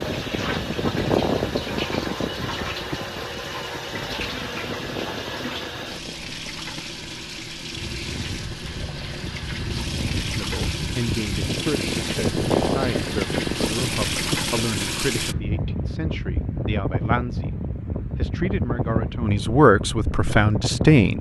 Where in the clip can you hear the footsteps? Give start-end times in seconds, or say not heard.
not heard.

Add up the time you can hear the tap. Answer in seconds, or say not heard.
15 s.